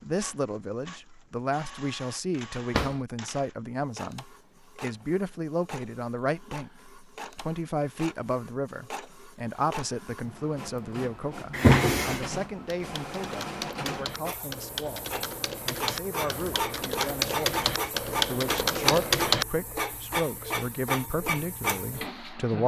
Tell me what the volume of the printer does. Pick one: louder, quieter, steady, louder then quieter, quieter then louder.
louder.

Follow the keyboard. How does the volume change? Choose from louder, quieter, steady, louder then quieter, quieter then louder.
louder.